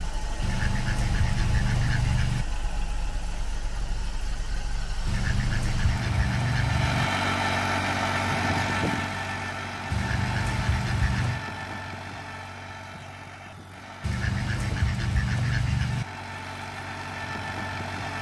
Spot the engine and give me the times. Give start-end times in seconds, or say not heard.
0.0-18.1.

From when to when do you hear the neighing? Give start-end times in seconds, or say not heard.
not heard.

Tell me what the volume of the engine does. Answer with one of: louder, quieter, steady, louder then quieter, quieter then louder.
louder then quieter.